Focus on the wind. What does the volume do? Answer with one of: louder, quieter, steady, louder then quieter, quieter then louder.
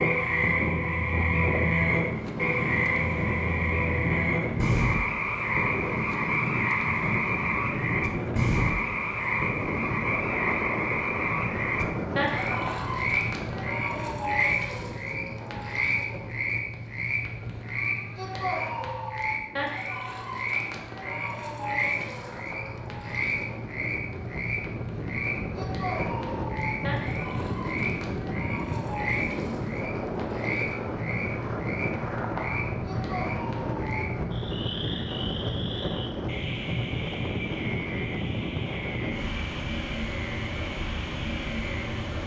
quieter then louder.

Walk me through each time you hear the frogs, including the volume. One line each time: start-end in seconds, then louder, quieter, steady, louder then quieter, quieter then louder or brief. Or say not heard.
0.0-42.2 quieter.